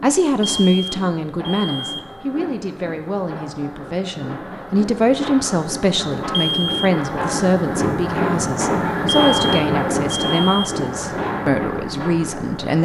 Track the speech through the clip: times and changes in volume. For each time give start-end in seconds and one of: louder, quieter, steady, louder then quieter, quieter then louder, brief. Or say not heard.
0.0-12.7 steady.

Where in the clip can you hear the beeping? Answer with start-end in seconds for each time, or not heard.
0.4-2.1, 6.3-6.9, 9.1-10.8.